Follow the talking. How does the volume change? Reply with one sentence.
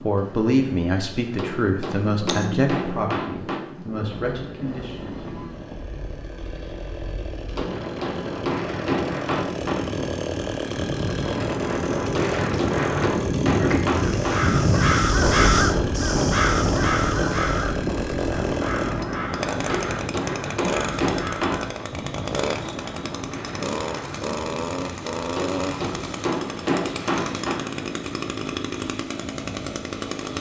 The loudness of the talking goes down.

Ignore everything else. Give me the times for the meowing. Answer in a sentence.
The meowing can be heard from 2.2 to 3.1 s.